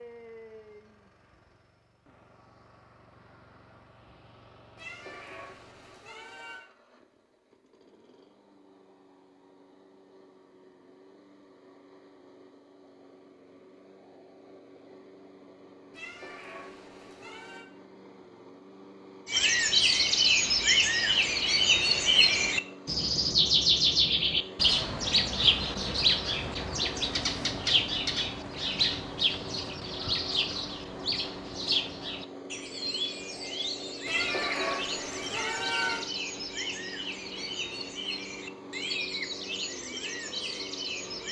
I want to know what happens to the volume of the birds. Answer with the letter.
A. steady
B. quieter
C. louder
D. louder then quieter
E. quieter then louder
B.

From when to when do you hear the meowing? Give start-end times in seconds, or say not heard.
4.8-6.7, 15.9-17.6, 34.0-36.0.